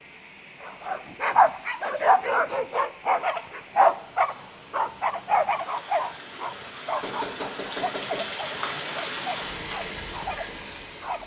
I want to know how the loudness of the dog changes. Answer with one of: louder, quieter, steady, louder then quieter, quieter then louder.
quieter.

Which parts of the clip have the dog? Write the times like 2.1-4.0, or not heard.
0.7-11.2.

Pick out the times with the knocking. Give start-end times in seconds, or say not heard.
7.0-8.3.